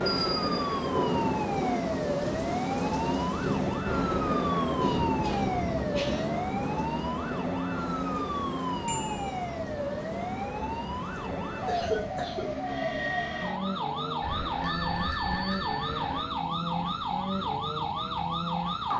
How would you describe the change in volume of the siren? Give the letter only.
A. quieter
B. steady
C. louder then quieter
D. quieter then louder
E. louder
B.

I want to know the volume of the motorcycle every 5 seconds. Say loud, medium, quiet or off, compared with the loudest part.
loud, loud, medium, medium.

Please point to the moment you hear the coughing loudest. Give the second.
12 s.